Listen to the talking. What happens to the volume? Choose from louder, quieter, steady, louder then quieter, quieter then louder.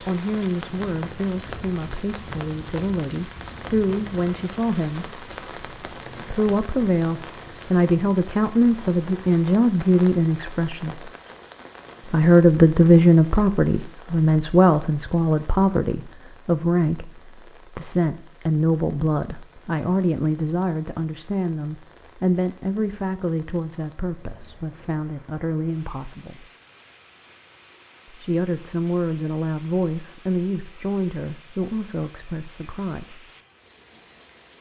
louder then quieter.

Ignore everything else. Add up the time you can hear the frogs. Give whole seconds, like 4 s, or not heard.
not heard.